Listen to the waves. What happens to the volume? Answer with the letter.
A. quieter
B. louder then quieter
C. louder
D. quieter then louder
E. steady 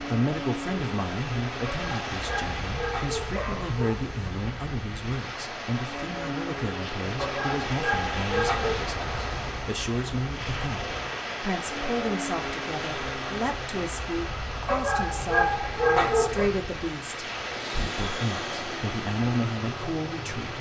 E.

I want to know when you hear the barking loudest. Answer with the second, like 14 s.
16 s.